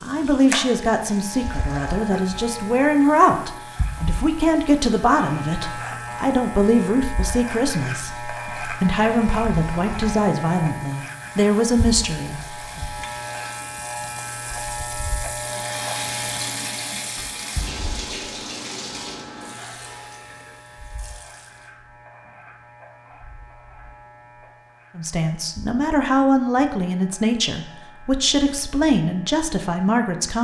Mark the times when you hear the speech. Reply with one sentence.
You can hear the speech from 0.0 to 12.8 s and from 24.9 to 30.3 s.